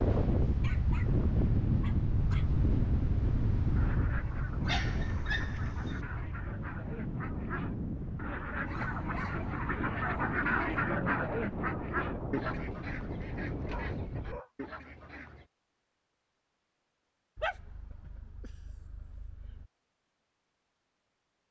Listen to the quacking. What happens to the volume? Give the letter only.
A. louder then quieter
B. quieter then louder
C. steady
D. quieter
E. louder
A.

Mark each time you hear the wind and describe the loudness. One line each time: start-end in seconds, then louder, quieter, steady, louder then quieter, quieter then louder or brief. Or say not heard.
0.0-14.4 quieter.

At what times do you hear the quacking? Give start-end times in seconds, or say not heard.
3.8-15.5.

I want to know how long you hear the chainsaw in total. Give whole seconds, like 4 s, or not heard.
not heard.